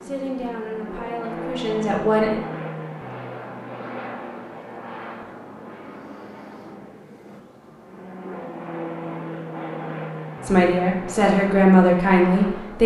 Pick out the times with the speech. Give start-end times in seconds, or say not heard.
0.0-2.4, 10.4-12.8.